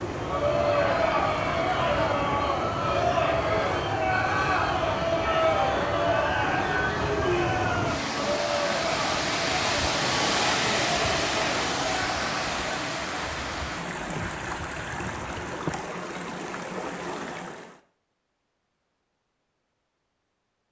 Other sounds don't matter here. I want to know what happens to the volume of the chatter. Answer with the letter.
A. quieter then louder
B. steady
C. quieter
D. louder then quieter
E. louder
C.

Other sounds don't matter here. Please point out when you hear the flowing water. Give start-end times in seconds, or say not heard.
0.0-17.8.